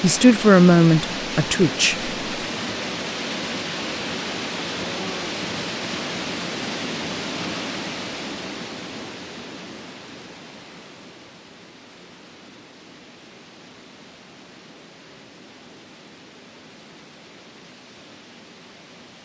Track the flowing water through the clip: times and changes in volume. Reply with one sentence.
You can hear the flowing water from 0.0 to 19.2 s, getting quieter.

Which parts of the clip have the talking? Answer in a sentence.
The talking can be heard from 0.0 to 2.1 s.